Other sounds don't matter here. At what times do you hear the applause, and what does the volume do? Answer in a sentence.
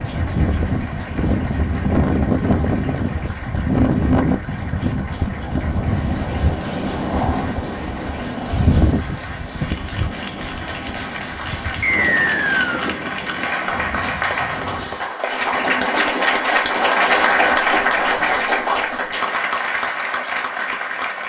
You can hear the applause from 0.0 to 21.2 s, getting louder.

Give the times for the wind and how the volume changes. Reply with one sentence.
You can hear the wind from 0.0 to 15.1 s, getting quieter.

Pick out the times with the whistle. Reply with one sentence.
You can hear the whistle from 11.8 to 12.9 s.